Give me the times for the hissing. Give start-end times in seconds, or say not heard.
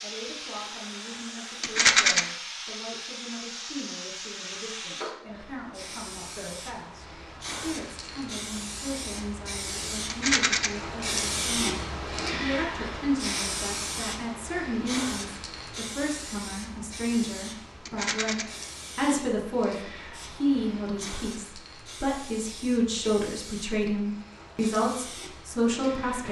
0.0-26.2.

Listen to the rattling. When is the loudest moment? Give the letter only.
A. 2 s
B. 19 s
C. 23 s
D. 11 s
A.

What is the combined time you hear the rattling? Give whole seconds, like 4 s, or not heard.
2 s.